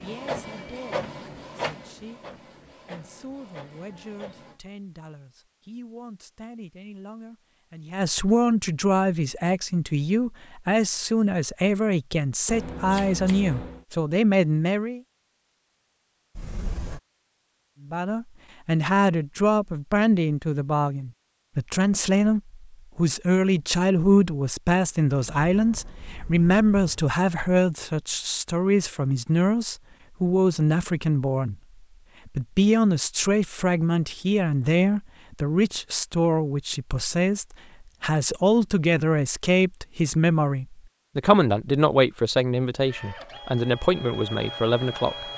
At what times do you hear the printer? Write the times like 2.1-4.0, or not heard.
0.0-4.6, 42.9-45.3.